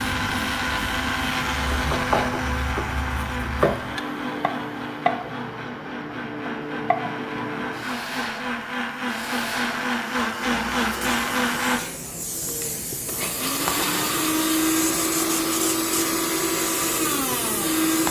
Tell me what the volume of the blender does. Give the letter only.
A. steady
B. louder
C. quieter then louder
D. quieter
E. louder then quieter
C.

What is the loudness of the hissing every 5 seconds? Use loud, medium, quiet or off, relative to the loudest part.
medium, loud, loud, loud.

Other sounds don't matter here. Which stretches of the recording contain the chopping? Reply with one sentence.
The chopping can be heard from 1.7 to 5.2 s and from 6.0 to 7.1 s.